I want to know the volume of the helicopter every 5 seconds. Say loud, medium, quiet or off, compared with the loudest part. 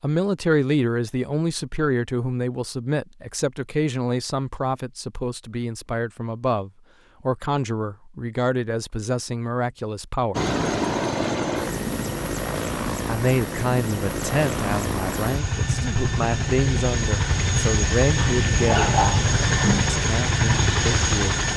off, off, loud, loud, loud.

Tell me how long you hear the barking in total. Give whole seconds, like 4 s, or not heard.
2 s.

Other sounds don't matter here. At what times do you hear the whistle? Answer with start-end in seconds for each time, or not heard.
not heard.